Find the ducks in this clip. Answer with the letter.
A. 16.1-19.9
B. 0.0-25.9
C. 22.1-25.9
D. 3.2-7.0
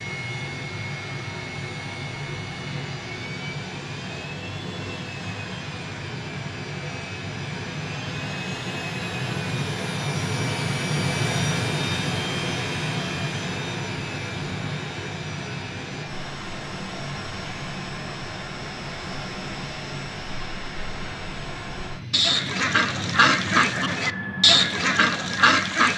C.